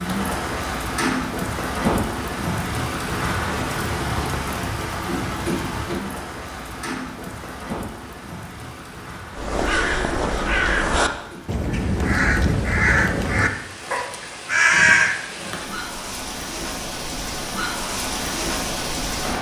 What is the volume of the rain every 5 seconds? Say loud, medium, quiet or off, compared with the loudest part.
loud, medium, quiet, loud.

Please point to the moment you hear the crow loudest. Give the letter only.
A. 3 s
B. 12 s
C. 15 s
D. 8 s
C.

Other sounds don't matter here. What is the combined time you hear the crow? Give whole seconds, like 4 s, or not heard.
6 s.